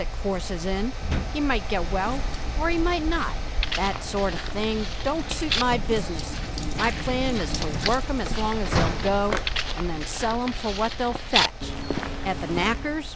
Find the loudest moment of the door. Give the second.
9 s.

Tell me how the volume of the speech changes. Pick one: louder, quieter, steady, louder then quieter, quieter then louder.
steady.